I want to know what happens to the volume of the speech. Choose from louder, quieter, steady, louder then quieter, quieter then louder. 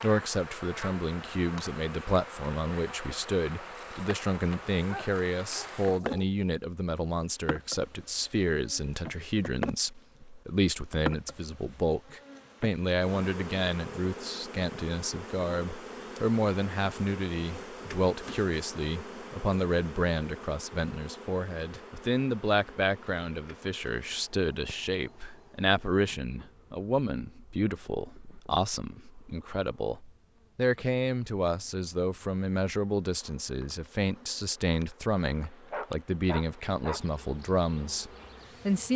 steady.